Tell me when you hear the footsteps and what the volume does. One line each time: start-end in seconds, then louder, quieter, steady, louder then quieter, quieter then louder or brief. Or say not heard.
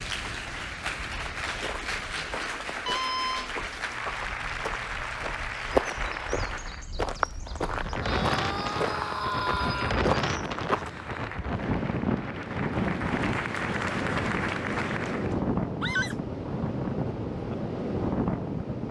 1.2-11.2 louder.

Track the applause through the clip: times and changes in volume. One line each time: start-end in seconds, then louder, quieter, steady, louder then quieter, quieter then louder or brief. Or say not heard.
0.0-6.8 steady
10.8-15.4 louder.